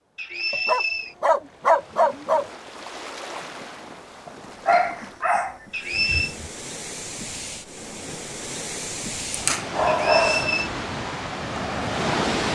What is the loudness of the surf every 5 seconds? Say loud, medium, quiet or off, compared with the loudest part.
quiet, medium, loud.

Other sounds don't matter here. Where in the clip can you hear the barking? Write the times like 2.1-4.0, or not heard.
0.5-2.5, 4.7-6.5, 9.3-10.6.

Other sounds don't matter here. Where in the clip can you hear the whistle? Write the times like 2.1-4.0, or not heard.
0.1-1.1, 5.7-6.3, 9.9-10.7.